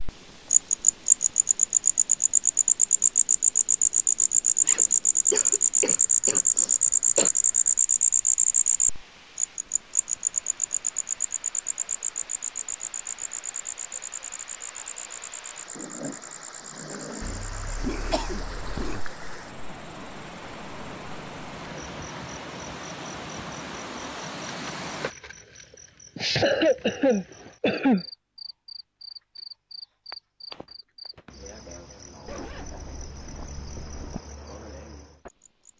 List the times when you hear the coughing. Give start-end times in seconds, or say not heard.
5.3-7.3, 17.2-19.0, 26.1-28.1.